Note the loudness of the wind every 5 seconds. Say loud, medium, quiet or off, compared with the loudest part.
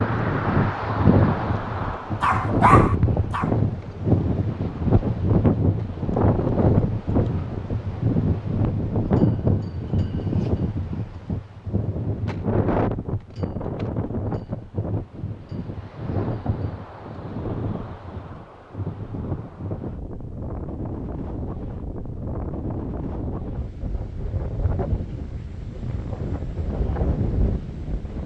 loud, loud, medium, medium, medium, medium.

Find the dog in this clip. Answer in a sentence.
The dog can be heard from 2.2 to 3.5 s.